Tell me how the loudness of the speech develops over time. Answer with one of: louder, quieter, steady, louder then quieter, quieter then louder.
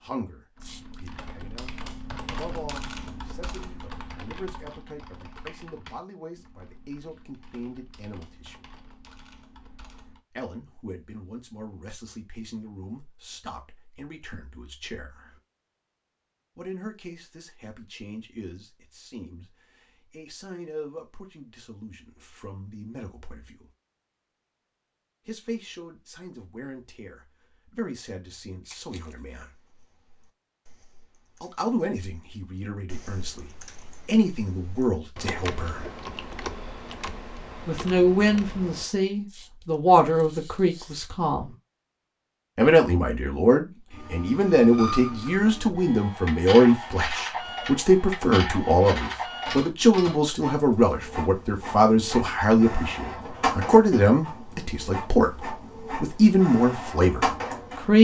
louder.